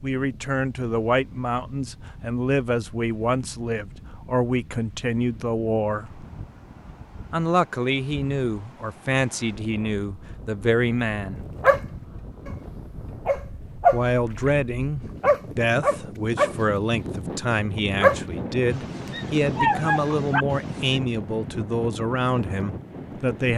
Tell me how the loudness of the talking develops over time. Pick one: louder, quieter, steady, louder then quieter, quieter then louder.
steady.